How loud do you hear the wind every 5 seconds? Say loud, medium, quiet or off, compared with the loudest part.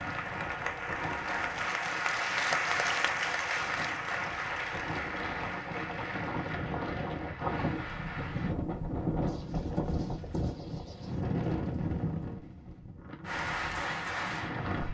medium, loud, loud.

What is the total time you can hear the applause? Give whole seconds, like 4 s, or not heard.
10 s.